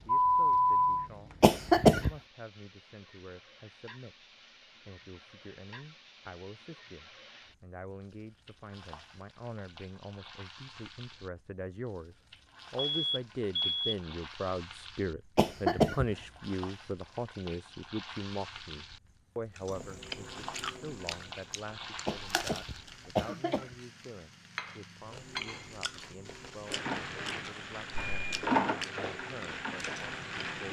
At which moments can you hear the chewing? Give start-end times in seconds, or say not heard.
19.6-23.2, 25.1-30.6.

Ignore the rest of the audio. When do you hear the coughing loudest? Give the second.
2 s.